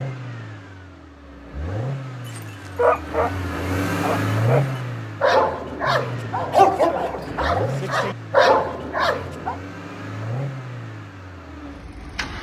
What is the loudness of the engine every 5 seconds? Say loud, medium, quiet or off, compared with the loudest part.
loud, medium, medium.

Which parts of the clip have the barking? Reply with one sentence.
The barking can be heard from 2.4 to 9.6 s.